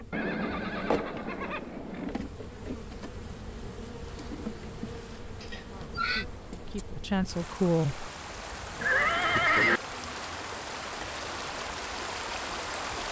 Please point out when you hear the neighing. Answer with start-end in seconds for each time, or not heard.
0.1-2.1, 4.8-6.2, 8.8-9.8.